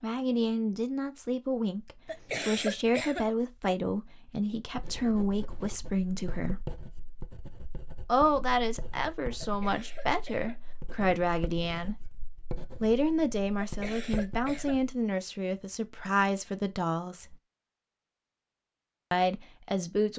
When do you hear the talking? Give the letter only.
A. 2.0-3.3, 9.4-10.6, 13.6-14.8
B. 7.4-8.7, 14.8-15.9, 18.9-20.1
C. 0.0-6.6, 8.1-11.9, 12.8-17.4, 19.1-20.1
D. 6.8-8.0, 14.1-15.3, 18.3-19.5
C.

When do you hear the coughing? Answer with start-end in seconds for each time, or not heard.
2.0-3.3, 9.4-10.6, 13.6-14.8.